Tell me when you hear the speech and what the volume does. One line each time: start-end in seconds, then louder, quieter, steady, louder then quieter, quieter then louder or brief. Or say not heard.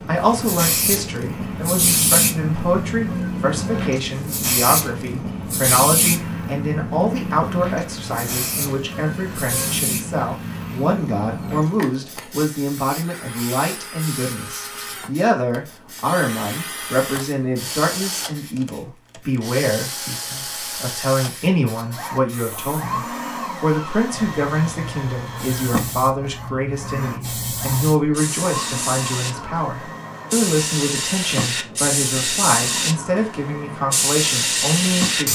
0.0-35.3 steady.